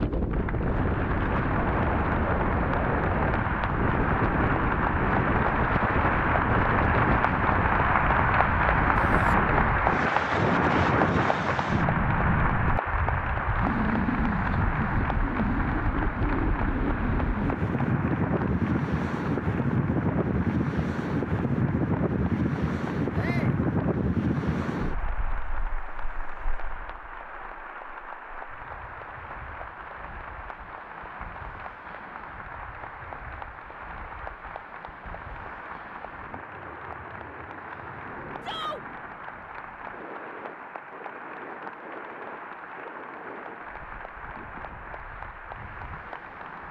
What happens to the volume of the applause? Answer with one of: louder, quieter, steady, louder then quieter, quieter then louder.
quieter.